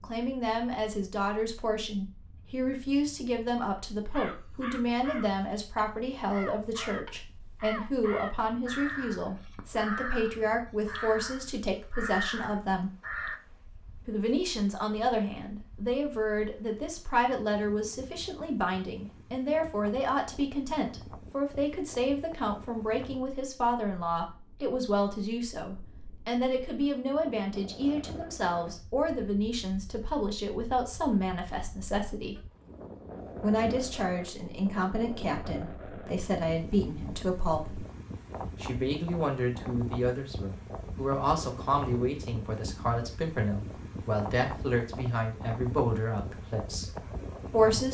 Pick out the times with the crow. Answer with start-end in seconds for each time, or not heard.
4.1-13.4.